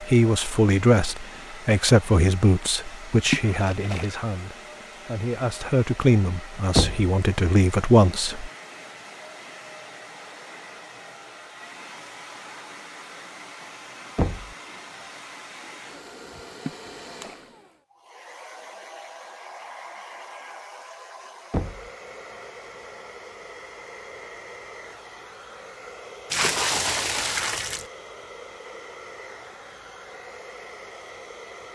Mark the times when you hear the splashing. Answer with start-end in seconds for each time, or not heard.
3.2-4.2, 16.6-17.4, 26.3-27.9.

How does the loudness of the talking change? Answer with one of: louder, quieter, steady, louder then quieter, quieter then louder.
quieter then louder.